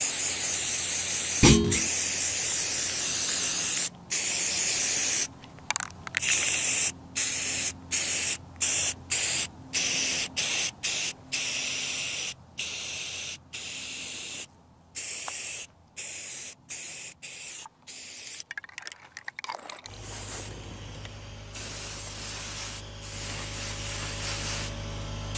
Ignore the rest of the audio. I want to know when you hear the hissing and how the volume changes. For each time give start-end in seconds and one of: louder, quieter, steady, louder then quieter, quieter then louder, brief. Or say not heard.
0.0-25.3 quieter.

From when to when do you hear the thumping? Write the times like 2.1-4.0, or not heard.
1.4-1.9.